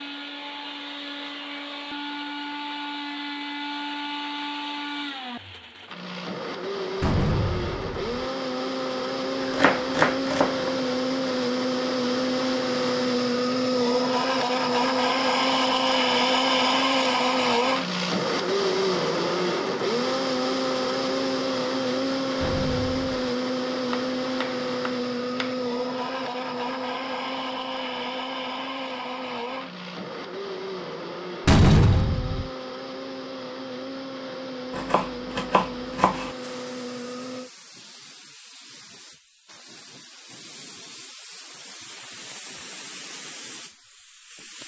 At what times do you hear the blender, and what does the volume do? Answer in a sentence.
The blender can be heard from 0.0 to 37.5 s, getting louder then quieter.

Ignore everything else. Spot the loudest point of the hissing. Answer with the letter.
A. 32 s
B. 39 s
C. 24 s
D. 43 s
D.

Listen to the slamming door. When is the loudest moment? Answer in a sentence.
The loudest moment of the slamming door is at 32 seconds.